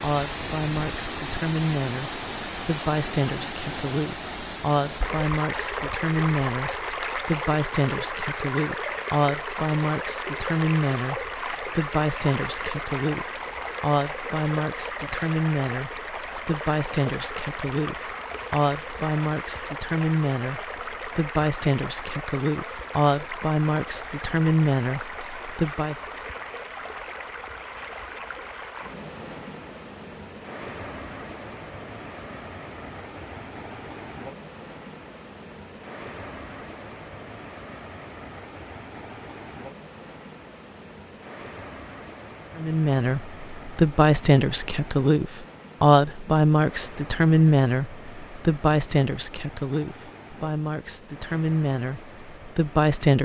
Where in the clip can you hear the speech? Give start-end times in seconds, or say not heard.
0.0-26.0, 42.5-53.2.